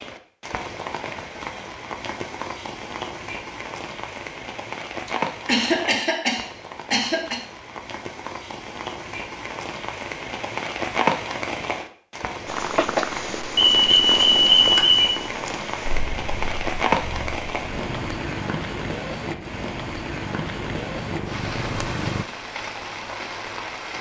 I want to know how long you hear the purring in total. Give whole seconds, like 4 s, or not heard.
10 s.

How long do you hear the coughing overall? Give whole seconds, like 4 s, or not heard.
2 s.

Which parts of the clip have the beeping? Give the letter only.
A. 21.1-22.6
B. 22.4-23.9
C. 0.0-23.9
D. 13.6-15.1
D.